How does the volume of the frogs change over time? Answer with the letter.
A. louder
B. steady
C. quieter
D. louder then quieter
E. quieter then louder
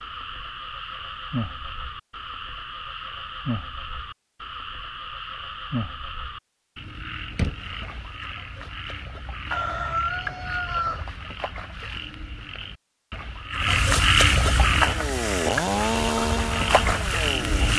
A.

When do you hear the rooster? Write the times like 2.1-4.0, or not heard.
9.5-11.1.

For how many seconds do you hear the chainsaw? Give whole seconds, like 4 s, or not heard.
3 s.